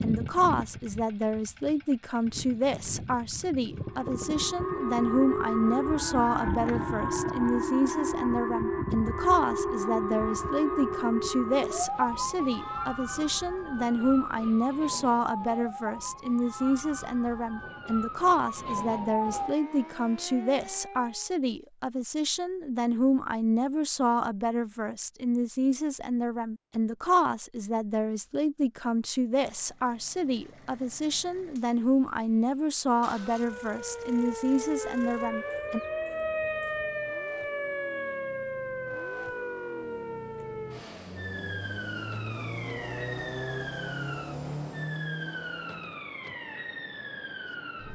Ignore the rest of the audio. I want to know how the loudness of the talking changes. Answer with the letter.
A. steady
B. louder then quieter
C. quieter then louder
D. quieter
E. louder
A.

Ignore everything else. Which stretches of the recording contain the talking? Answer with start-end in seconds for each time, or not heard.
0.0-35.8.